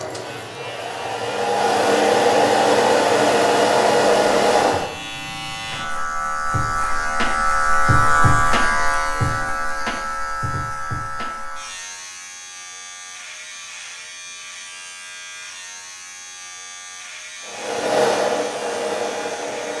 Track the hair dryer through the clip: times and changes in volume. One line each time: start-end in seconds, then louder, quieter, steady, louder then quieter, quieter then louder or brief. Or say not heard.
0.0-4.9 louder
17.4-19.7 brief.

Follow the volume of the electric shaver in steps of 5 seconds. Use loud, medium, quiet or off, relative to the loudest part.
quiet, loud, medium, quiet.